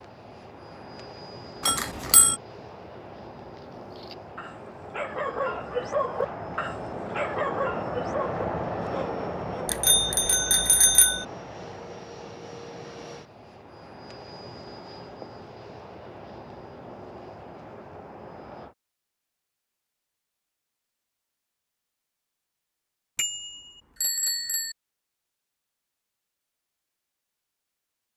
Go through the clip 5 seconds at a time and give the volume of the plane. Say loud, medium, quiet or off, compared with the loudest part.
medium, loud, medium, medium, off, off.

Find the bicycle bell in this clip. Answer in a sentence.
You can hear the bicycle bell from 1.6 to 2.4 s, from 9.7 to 11.2 s and from 23.1 to 24.8 s.